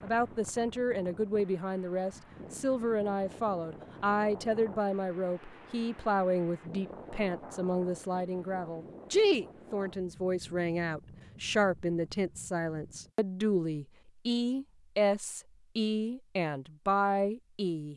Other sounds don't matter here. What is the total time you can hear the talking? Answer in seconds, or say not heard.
18 s.